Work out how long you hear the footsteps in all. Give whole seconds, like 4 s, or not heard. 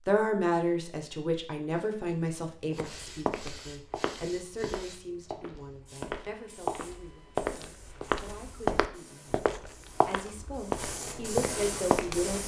10 s.